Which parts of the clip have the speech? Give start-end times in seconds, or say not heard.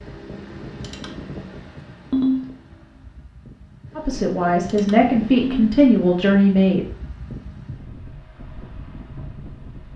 4.0-6.8.